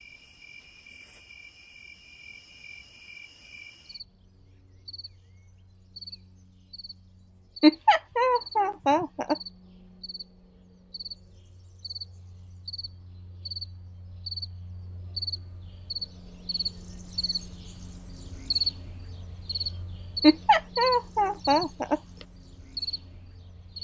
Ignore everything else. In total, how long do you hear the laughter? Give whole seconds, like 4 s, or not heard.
4 s.